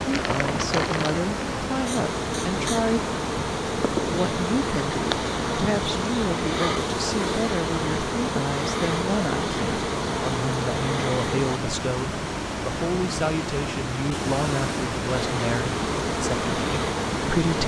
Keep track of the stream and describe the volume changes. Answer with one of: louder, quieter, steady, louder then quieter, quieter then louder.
steady.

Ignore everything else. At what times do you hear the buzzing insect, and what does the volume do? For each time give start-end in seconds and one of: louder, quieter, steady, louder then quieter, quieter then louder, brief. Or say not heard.
0.0-11.6 steady
15.1-17.6 brief.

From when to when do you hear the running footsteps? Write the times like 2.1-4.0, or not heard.
not heard.